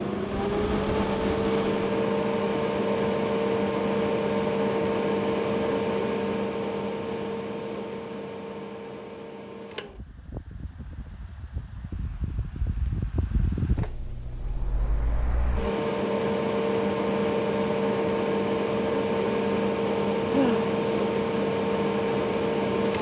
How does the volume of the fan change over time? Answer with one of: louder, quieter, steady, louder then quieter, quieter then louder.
quieter then louder.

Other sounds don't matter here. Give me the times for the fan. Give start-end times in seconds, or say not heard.
0.0-22.9.